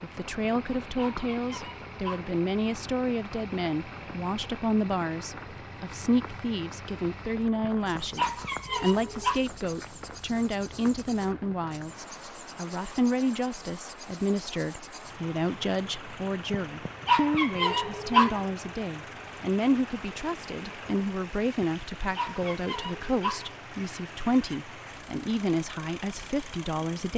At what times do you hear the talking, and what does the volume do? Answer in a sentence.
The talking can be heard from 0.0 to 27.1 s, at a steady volume.